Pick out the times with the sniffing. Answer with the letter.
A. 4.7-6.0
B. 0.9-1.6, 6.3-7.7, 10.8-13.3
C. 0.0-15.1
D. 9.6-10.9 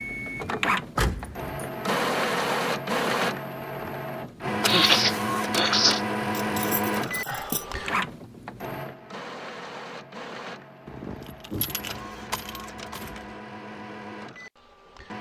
A.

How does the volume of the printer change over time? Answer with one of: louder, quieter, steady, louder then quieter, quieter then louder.
quieter.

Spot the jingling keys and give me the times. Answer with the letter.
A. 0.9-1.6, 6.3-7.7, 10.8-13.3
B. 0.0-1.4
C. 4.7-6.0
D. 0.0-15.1
A.